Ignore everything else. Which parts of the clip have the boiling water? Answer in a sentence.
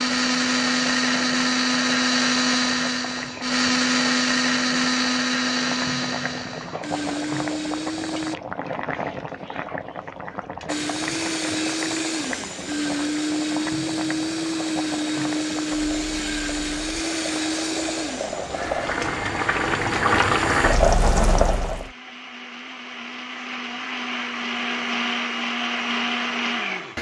You can hear the boiling water from 0.0 to 21.9 s.